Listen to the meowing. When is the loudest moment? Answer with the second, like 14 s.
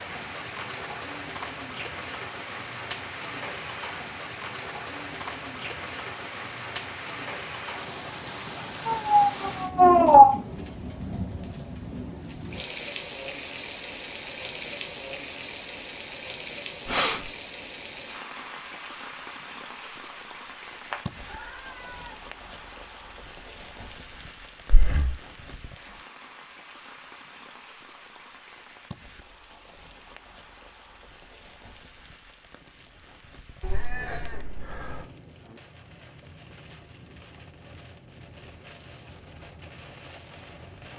10 s.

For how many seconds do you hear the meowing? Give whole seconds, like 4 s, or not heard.
4 s.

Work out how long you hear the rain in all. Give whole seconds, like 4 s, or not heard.
41 s.